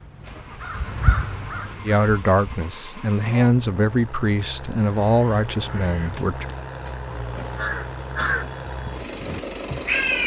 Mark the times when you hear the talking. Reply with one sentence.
You can hear the talking from 1.9 to 6.5 s.